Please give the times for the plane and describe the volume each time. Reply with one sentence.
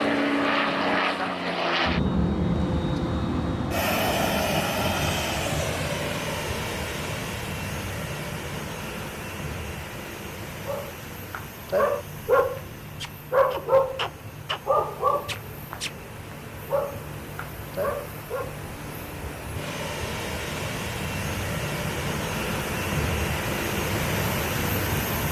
The plane can be heard from 0.0 to 25.2 s, getting quieter then louder.